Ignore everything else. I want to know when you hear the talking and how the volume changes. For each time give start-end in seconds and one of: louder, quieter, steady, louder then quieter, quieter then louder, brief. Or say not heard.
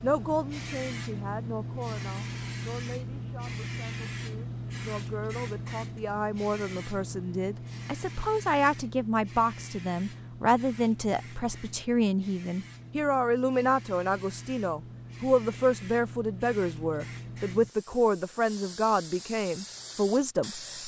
0.0-20.8 louder.